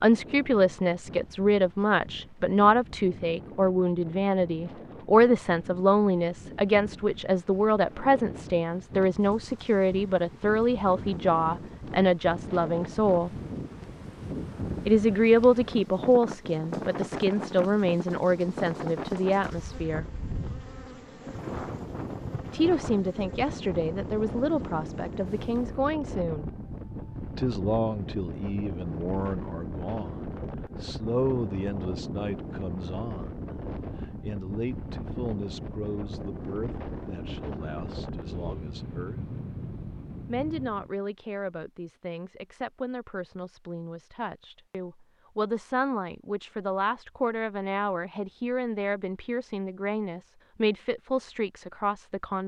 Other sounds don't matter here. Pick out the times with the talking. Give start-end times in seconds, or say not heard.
0.0-13.3, 14.8-20.1, 22.5-26.5, 27.4-33.5, 34.2-39.2, 40.2-52.4.